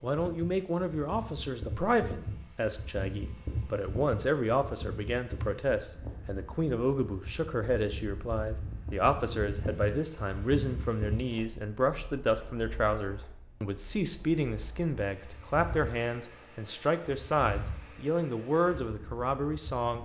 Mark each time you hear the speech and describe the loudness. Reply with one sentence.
The speech can be heard from 0.0 to 20.0 s, at a steady volume.